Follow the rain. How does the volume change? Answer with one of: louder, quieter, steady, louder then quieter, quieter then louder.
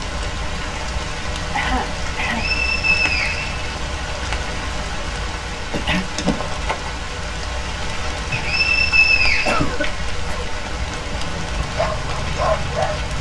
steady.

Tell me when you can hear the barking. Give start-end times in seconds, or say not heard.
11.6-13.1.